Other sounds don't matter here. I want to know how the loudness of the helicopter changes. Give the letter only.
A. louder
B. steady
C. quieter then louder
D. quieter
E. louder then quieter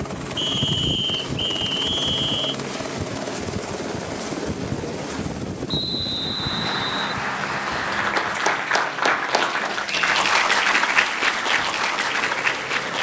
D.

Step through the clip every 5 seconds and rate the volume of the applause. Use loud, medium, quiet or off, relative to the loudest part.
off, loud, loud.